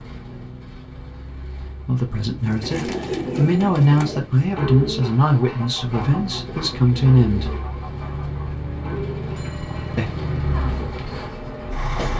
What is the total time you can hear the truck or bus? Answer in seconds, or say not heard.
12 s.